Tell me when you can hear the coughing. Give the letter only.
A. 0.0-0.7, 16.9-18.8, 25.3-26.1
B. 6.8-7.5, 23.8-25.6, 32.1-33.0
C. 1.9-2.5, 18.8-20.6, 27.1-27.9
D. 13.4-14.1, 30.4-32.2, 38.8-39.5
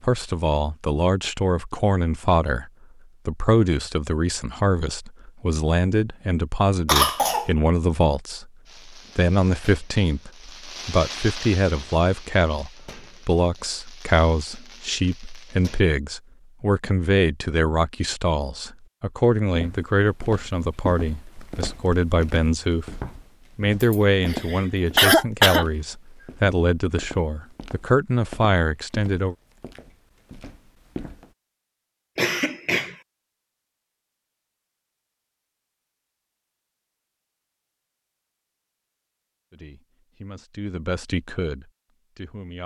B.